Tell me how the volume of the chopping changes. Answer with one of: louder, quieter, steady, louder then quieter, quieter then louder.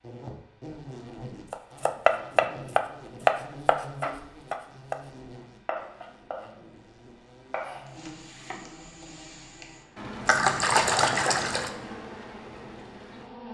quieter.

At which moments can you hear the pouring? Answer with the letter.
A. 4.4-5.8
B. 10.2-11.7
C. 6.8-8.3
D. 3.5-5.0
B.